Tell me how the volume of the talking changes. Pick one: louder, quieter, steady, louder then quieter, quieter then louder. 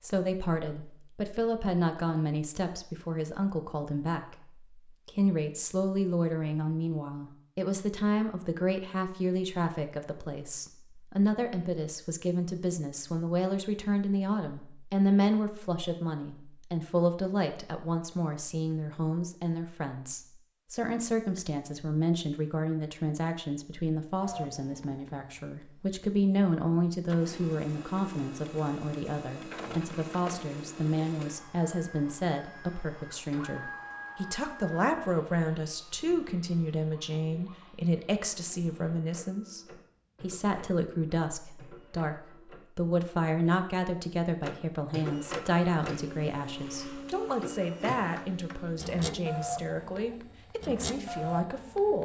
steady.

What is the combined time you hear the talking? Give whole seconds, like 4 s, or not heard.
52 s.